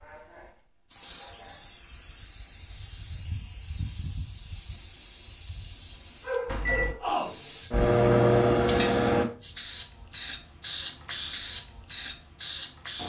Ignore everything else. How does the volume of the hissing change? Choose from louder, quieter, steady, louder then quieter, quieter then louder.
louder.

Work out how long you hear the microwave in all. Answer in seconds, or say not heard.
3 s.